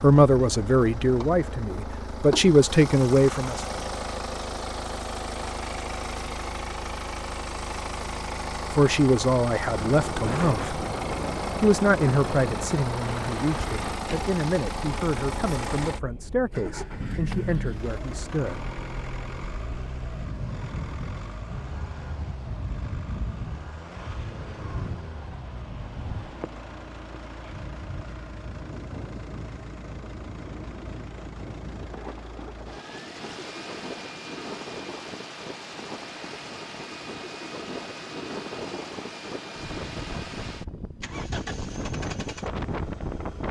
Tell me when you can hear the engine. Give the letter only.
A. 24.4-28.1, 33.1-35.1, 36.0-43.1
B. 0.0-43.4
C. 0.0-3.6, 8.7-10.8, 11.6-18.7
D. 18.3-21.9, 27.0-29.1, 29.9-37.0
B.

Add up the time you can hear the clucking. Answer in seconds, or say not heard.
not heard.